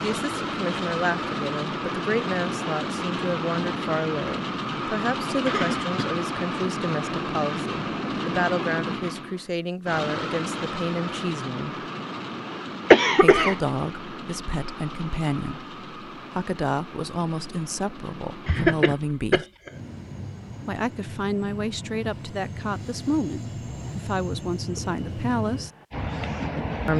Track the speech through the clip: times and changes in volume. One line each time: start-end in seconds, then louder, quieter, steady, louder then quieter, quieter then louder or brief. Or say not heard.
0.0-11.8 steady
13.2-19.4 steady
20.6-25.7 steady.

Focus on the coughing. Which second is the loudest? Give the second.
13 s.